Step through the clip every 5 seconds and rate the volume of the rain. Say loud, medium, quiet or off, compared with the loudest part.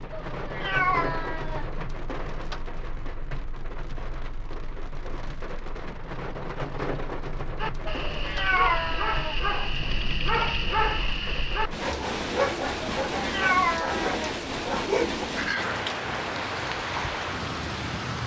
medium, medium, loud, loud.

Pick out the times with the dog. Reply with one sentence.
The dog can be heard from 7.5 to 15.8 s.